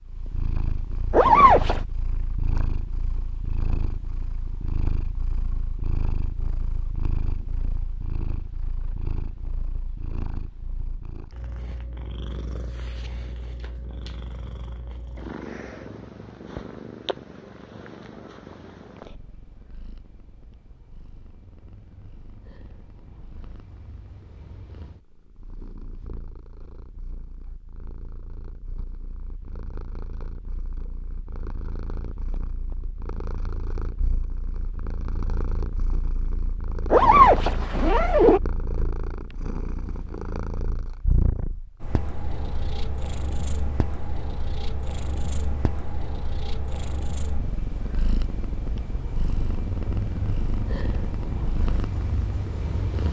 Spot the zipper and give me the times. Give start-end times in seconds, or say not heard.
1.1-1.8, 36.9-38.4.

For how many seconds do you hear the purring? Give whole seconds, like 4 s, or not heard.
53 s.